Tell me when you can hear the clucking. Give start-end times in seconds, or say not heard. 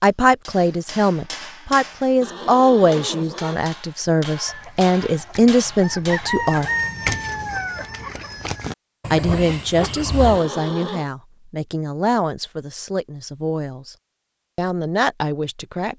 4.2-10.4.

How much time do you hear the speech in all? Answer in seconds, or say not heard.
13 s.